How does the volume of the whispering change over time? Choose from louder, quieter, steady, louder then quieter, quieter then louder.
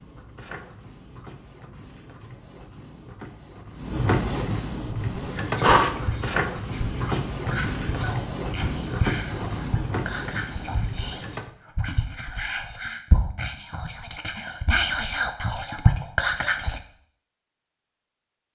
louder.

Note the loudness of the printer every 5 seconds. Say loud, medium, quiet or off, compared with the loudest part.
medium, loud, medium, off.